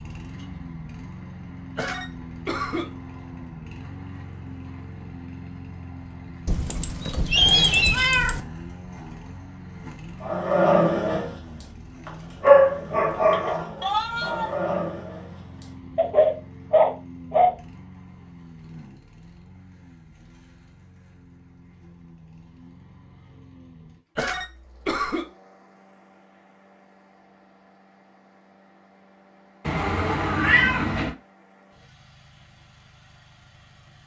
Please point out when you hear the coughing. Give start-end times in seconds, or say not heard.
1.8-2.9, 24.1-25.2.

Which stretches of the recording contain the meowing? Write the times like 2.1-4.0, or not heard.
6.5-8.4, 13.8-14.6, 29.6-31.1.